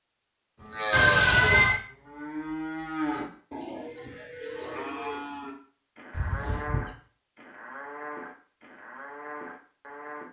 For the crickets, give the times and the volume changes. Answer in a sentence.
You can't hear the crickets here.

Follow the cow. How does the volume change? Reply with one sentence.
The loudness of the cow goes down.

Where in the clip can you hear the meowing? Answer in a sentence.
You can hear the meowing from 0.9 to 1.8 s and from 6.1 to 6.9 s.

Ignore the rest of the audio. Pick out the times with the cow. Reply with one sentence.
You can hear the cow from 0.6 to 10.2 s.